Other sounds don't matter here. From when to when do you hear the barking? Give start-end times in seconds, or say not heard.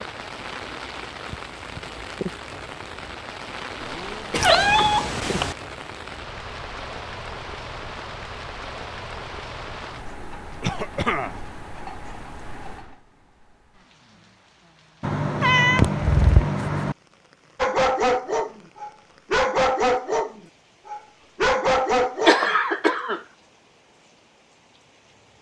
17.6-22.5.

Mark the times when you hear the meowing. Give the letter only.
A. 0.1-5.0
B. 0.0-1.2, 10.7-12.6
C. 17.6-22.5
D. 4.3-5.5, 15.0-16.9
D.